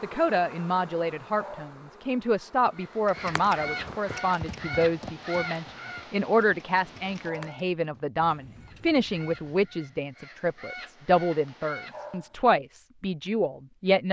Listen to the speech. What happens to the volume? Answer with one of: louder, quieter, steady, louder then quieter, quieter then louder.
steady.